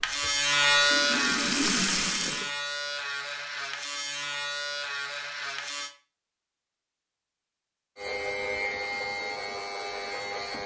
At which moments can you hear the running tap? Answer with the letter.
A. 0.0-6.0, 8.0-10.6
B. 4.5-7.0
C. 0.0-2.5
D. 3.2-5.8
C.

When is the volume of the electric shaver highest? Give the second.
1 s.